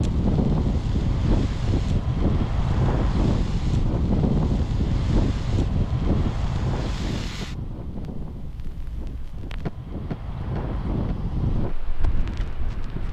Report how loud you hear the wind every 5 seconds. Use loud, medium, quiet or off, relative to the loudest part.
loud, medium, medium.